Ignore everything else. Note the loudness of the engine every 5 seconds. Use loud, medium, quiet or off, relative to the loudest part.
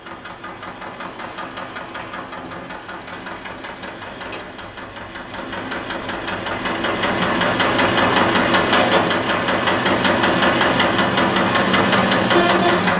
quiet, loud, loud.